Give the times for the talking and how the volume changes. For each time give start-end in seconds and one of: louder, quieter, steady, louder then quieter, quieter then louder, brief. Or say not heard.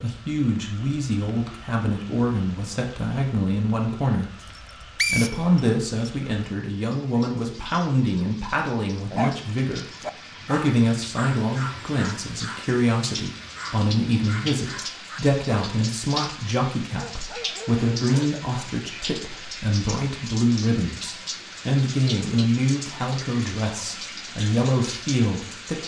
0.0-25.8 steady.